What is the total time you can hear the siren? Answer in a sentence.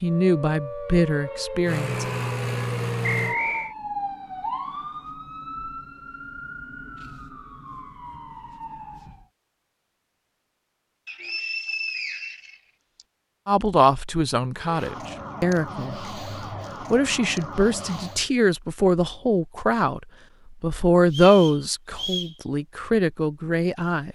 You can hear the siren for 13 seconds altogether.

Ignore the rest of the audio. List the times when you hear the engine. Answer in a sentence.
You can hear the engine from 1.6 to 3.4 s.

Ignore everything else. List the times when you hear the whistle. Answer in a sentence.
The whistle can be heard from 3.0 to 3.8 s, from 11.1 to 13.1 s and from 21.1 to 22.4 s.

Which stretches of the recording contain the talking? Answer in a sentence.
You can hear the talking from 0.0 to 2.0 s, from 13.4 to 16.0 s, from 16.9 to 20.0 s and from 20.6 to 24.0 s.